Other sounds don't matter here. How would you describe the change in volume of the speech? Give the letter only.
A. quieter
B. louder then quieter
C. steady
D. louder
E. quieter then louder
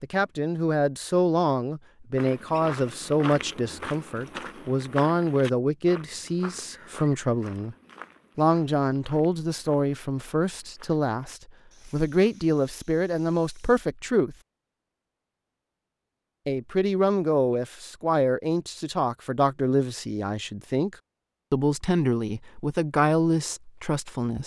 C.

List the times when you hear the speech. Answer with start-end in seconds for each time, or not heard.
0.0-7.8, 8.3-14.3, 16.4-24.4.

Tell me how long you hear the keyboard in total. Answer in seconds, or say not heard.
not heard.